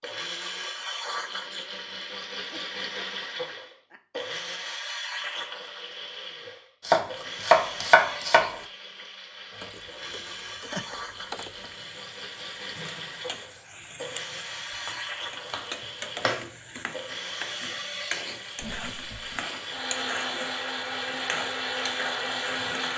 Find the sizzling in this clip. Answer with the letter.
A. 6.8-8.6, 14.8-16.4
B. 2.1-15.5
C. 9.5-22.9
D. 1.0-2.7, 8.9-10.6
C.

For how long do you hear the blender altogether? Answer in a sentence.
The blender can be heard for 23 seconds in total.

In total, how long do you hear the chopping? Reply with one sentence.
The chopping can be heard for 3 seconds in total.